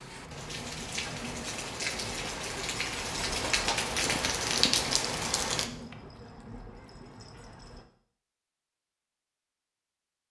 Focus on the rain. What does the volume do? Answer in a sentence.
The loudness of the rain goes up.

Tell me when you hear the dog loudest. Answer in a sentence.
The volume of the dog peaks at 4 seconds.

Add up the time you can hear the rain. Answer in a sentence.
You can hear the rain for 6 seconds altogether.